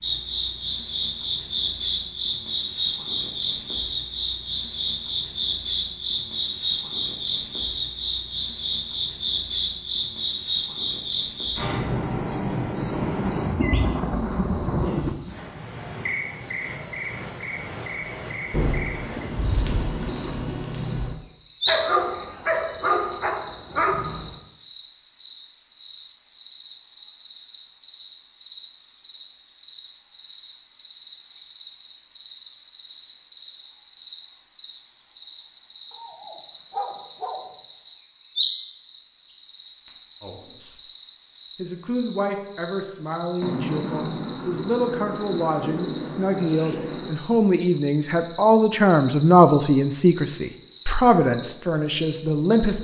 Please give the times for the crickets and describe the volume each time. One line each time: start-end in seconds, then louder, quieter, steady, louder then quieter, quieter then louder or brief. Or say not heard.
0.0-52.7 steady.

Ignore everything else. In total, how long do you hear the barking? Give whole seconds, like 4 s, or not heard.
4 s.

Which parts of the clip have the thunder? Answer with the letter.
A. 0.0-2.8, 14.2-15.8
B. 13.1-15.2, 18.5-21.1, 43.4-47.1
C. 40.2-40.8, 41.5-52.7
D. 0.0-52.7
B.